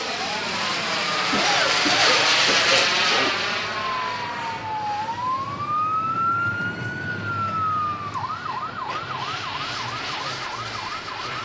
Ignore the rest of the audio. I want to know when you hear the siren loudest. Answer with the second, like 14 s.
6 s.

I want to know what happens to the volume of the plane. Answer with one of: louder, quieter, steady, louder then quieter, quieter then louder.
quieter then louder.